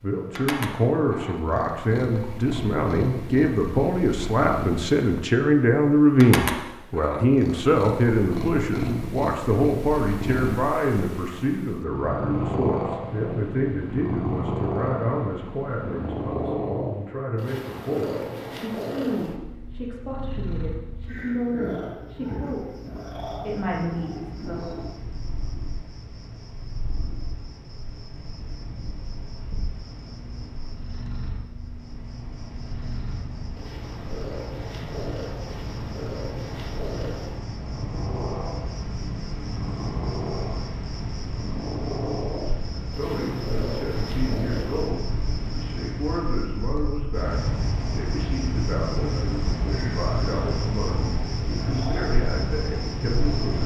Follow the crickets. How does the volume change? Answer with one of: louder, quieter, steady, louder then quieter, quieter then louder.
louder.